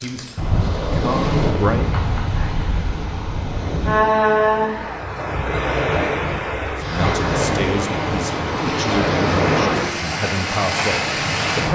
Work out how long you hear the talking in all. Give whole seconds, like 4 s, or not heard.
7 s.